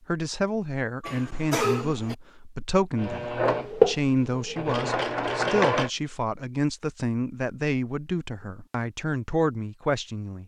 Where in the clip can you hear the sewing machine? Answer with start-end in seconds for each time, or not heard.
3.0-5.9.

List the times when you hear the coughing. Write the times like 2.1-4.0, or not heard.
1.0-2.1.